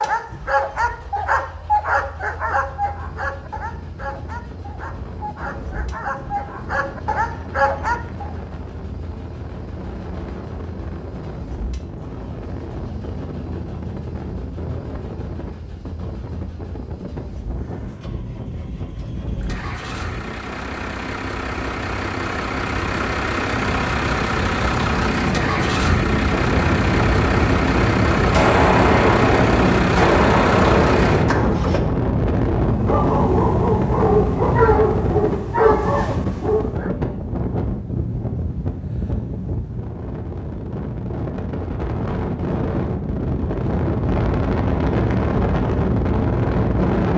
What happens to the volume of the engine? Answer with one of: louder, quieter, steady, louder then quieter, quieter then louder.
louder.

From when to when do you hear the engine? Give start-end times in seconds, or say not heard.
0.0-31.8.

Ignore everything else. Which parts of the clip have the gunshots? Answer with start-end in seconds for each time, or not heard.
28.3-31.3.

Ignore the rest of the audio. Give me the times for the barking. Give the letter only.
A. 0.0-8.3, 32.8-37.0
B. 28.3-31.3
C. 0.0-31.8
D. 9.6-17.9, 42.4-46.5
A.